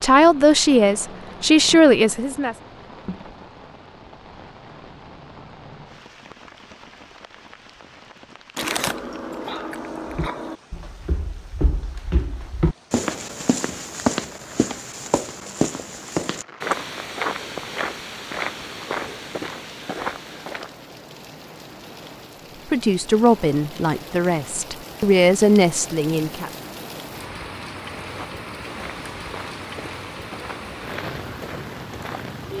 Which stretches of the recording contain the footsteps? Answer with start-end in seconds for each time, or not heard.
10.1-20.8, 28.0-32.5.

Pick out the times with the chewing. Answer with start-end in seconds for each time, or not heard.
8.6-10.6.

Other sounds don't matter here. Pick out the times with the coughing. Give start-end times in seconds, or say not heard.
not heard.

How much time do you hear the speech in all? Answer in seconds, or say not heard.
6 s.